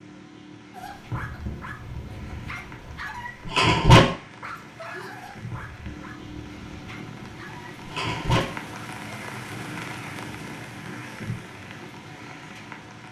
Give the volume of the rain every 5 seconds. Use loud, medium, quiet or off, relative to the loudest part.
medium, loud, loud.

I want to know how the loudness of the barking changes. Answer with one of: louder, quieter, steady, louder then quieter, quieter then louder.
louder then quieter.